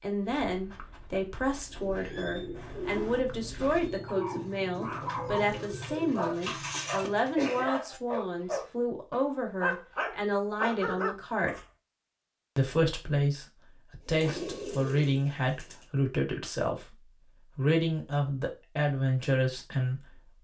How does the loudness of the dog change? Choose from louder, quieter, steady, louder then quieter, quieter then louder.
louder.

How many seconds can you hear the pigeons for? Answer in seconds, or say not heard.
8 s.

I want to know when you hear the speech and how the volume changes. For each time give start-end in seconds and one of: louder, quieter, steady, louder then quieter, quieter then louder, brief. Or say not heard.
0.0-11.6 steady
12.6-20.3 steady.